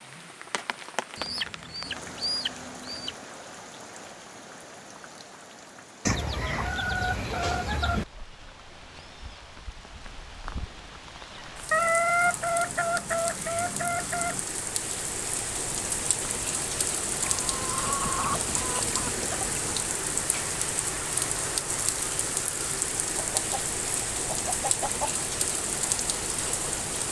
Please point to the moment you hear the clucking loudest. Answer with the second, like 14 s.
12 s.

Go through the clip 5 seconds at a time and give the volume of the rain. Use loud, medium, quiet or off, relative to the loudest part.
medium, quiet, medium, loud, loud, loud.